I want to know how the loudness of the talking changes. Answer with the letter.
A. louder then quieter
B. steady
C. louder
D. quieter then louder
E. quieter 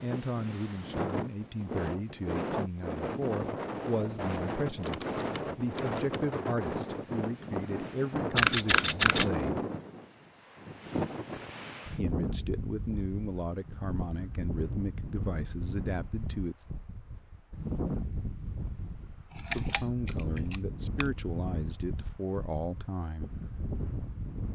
B.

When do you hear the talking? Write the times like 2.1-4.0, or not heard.
0.0-9.6, 11.9-16.6, 19.6-23.3.